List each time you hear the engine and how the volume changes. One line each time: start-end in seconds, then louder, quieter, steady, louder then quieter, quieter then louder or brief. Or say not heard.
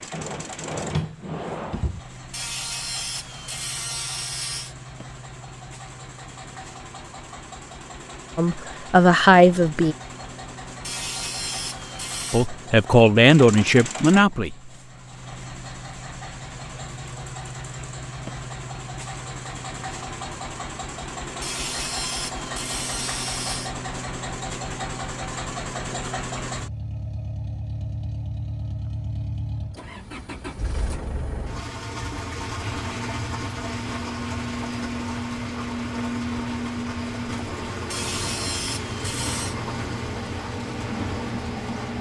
0.0-41.9 louder.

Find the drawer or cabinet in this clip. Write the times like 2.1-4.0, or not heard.
0.1-2.0.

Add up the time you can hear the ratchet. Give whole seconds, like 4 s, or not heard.
8 s.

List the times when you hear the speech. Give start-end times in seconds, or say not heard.
8.3-9.9, 12.3-14.6.